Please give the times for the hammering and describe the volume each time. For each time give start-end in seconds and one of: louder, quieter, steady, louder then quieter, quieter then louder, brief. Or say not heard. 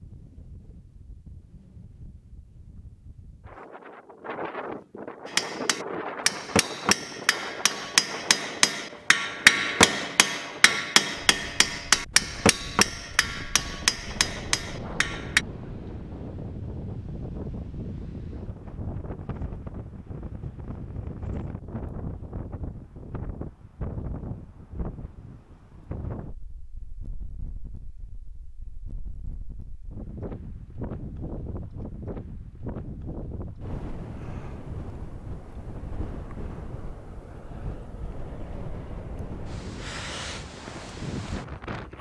5.2-15.4 louder then quieter.